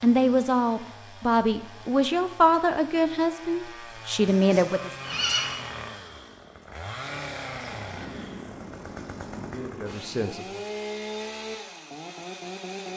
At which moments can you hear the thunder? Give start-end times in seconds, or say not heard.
7.7-10.2.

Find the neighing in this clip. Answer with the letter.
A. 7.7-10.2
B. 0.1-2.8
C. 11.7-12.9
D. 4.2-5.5
D.